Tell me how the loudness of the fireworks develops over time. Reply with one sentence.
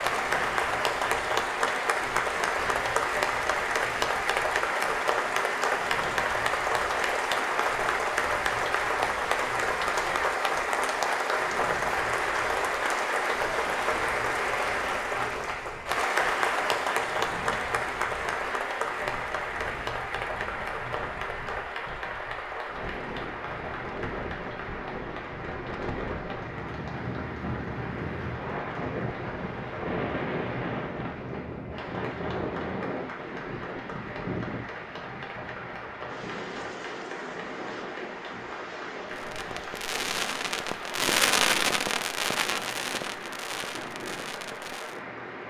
The volume of the fireworks goes up, then down.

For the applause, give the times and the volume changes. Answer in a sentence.
The applause can be heard from 0.0 to 45.4 s, getting quieter.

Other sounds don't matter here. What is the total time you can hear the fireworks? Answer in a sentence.
The fireworks can be heard for 6 seconds in total.